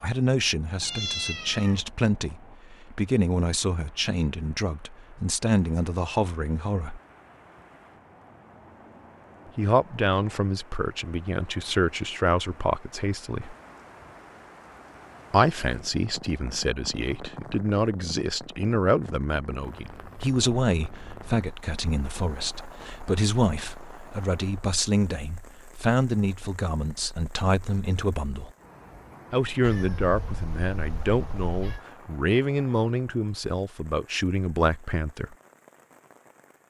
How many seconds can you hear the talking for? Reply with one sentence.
You can hear the talking for 30 seconds altogether.